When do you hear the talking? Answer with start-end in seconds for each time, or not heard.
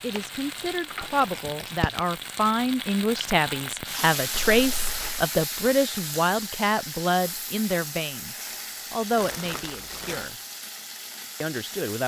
0.0-10.3, 11.4-12.0.